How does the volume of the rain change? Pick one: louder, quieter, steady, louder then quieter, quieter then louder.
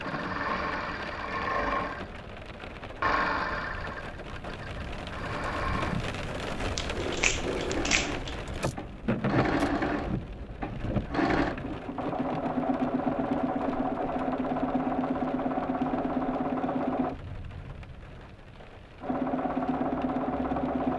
louder then quieter.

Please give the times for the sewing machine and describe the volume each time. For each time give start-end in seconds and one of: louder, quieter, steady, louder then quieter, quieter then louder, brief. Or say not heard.
0.0-17.2 quieter then louder
19.0-20.9 brief.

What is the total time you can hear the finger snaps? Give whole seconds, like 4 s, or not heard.
2 s.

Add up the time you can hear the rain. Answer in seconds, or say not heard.
21 s.